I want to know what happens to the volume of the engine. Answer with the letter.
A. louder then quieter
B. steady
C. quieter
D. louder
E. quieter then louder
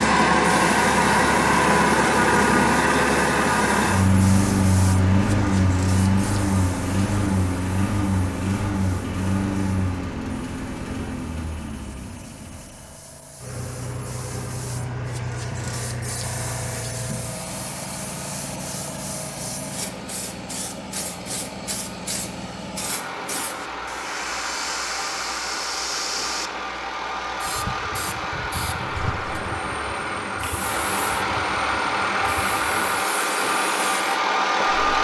E.